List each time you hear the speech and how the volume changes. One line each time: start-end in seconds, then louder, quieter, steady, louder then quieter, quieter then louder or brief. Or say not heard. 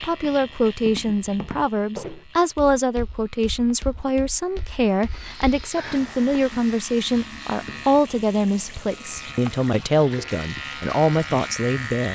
0.0-12.1 steady.